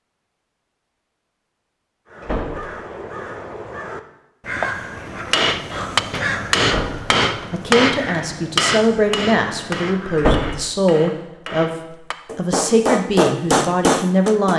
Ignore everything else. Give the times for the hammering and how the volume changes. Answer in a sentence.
The hammering can be heard from 5.3 to 14.5 s, getting quieter then louder.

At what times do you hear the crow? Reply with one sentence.
You can hear the crow from 2.0 to 10.4 s.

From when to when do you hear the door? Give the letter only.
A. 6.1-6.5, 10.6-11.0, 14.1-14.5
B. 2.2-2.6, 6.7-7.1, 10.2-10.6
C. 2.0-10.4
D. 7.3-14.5
B.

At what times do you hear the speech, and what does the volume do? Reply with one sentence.
The speech can be heard from 7.3 to 14.5 s, at a steady volume.